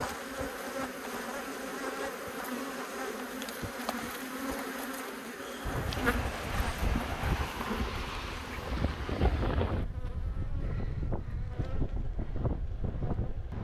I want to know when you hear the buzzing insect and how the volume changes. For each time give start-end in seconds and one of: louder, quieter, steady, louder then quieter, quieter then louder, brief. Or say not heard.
0.0-13.5 quieter.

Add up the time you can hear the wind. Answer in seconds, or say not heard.
8 s.